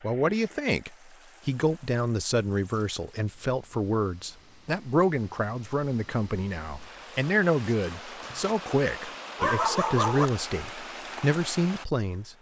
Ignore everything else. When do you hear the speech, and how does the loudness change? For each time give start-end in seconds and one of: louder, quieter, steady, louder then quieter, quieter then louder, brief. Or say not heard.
0.0-12.3 steady.